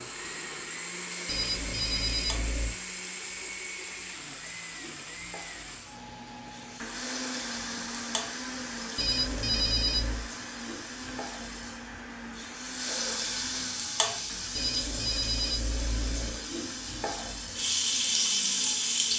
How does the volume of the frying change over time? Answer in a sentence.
The loudness of the frying goes up.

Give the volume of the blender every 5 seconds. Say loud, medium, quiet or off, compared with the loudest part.
loud, loud, medium, medium.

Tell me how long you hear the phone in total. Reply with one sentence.
The phone can be heard for 5 seconds in total.